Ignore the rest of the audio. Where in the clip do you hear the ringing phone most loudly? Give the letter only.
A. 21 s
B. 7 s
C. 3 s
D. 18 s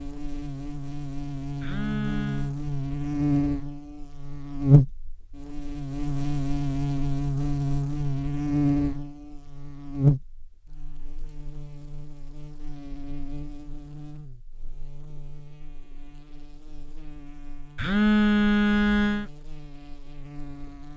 D.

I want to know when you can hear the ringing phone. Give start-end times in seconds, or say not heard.
1.6-2.5, 17.8-19.3.